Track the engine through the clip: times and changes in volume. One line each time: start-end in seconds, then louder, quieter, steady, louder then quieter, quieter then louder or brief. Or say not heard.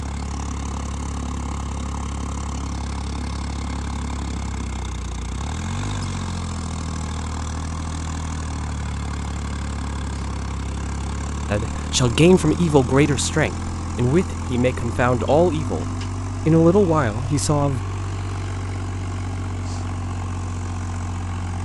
0.0-21.6 steady.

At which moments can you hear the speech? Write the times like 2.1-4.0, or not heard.
11.5-17.8.